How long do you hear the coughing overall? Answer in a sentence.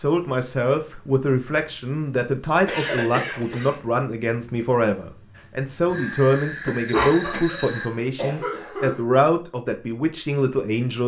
The coughing can be heard for 3 seconds in total.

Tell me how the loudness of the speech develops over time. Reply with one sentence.
The loudness of the speech stays about the same.